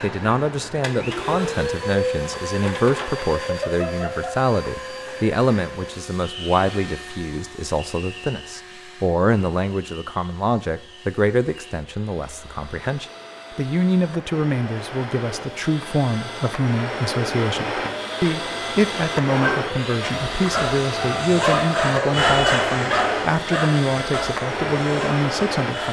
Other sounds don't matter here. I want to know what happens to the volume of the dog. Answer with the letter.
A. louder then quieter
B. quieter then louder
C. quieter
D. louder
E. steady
A.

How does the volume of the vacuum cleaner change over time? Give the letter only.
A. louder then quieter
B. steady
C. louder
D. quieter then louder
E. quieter
D.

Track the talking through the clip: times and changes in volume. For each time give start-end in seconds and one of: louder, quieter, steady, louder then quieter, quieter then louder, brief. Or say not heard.
0.0-25.8 steady.